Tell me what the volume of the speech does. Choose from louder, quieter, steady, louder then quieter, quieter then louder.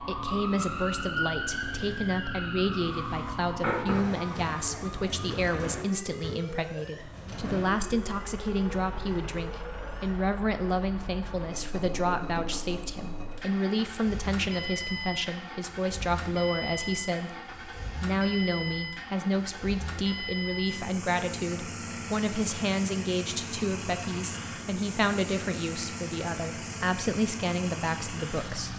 steady.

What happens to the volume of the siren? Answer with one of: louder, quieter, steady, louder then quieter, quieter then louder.
quieter.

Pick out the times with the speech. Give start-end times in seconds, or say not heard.
0.0-28.7.